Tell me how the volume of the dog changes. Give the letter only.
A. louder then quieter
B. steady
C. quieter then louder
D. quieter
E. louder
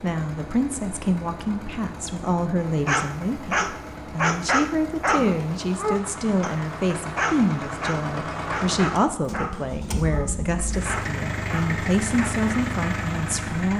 D.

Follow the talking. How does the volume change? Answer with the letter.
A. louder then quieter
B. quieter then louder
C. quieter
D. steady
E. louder
D.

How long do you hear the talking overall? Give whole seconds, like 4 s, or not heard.
14 s.